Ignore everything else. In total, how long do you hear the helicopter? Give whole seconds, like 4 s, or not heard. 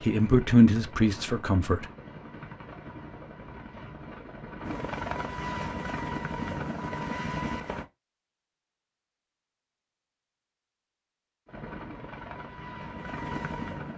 10 s.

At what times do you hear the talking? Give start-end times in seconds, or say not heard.
0.0-1.9.